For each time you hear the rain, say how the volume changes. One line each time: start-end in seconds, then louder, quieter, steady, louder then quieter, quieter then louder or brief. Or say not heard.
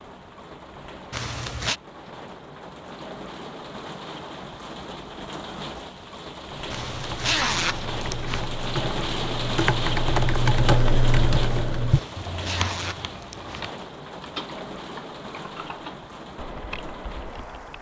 0.0-17.7 louder then quieter.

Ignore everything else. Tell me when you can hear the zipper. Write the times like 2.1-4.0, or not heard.
1.1-1.8, 6.7-8.5, 11.9-13.7.